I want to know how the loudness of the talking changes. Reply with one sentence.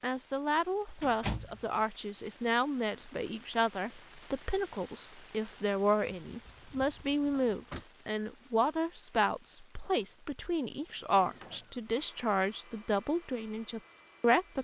The loudness of the talking stays about the same.